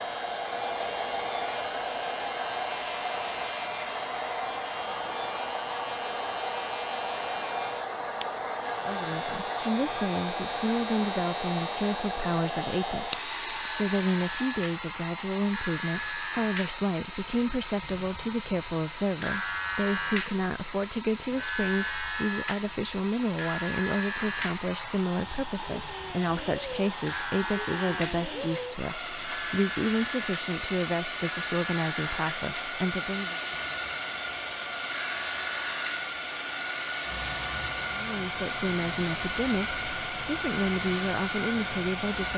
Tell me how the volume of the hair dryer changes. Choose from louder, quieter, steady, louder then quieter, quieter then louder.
quieter then louder.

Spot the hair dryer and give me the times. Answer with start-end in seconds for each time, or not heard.
0.0-42.3.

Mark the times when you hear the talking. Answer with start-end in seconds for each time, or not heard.
8.8-33.4, 38.0-42.3.